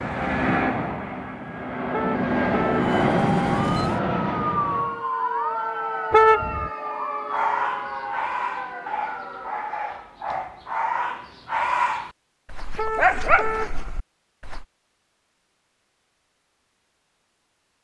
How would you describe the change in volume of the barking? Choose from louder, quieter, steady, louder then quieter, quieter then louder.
louder.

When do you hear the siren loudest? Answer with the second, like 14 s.
5 s.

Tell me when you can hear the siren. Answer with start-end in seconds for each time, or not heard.
2.7-10.2.